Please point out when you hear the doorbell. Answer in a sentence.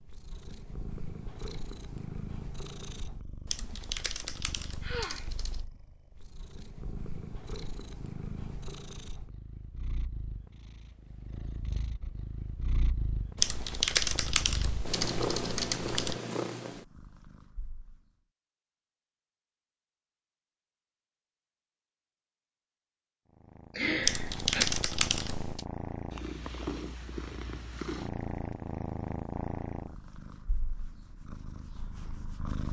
You can't hear the doorbell here.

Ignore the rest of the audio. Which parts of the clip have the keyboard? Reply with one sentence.
The keyboard can be heard from 3.5 to 5.7 s, from 13.3 to 16.1 s and from 24.0 to 25.6 s.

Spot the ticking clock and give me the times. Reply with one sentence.
The ticking clock can't be heard in this clip.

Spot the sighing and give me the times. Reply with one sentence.
The sighing can be heard from 4.8 to 5.3 s and from 23.8 to 24.6 s.